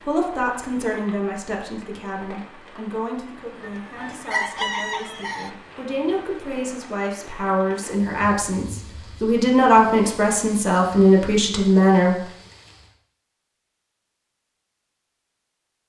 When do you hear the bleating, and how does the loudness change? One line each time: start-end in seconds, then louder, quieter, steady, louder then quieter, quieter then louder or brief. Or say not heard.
not heard.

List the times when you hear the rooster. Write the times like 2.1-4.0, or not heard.
3.6-5.5.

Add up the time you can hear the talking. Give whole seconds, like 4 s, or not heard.
12 s.